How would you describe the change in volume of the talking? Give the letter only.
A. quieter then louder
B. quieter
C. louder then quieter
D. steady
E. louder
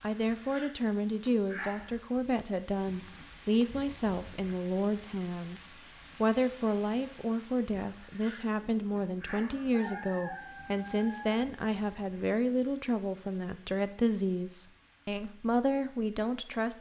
D.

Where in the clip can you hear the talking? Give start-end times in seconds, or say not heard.
0.0-16.7.